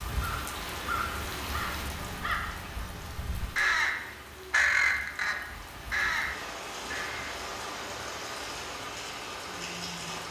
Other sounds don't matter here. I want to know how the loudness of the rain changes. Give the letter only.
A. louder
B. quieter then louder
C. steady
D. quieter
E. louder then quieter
B.